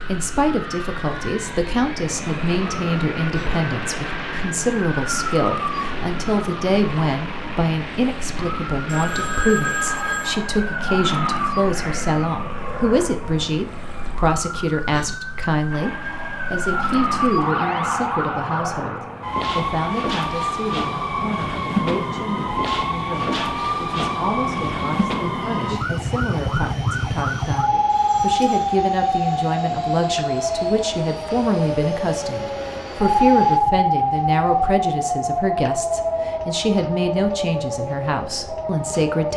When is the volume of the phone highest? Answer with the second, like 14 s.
10 s.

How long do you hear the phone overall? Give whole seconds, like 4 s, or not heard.
2 s.